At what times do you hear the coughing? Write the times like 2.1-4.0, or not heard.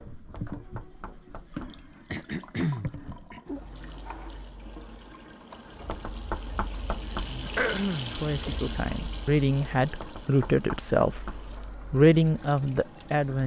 2.1-3.4, 7.5-8.2.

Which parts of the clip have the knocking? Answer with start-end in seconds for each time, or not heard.
0.3-1.9, 5.8-7.4, 10.0-11.5.